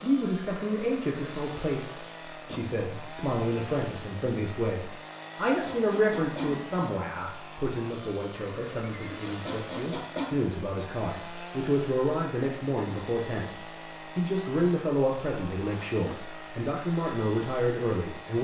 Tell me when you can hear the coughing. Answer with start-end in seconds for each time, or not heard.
5.5-6.6, 9.2-10.3.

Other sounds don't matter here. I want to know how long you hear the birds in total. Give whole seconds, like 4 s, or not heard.
not heard.